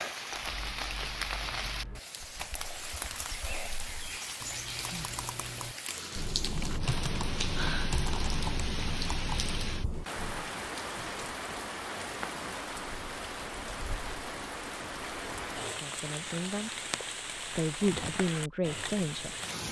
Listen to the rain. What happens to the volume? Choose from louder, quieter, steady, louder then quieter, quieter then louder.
steady.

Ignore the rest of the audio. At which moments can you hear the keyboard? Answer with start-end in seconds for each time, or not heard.
0.3-10.5.